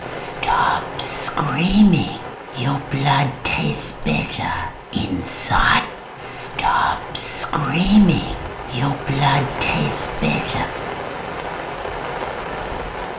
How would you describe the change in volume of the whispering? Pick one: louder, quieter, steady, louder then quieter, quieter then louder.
steady.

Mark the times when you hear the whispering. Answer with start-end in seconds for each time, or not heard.
0.0-10.7.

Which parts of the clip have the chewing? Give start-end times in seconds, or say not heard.
not heard.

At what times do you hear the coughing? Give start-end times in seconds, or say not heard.
not heard.